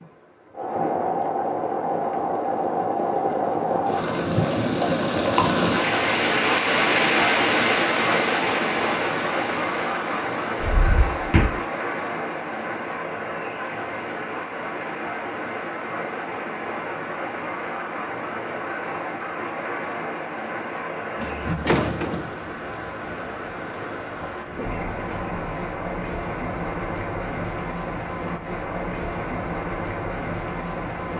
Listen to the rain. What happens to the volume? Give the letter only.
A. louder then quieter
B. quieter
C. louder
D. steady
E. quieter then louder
B.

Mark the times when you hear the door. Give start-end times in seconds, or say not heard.
10.6-11.6, 21.1-22.3.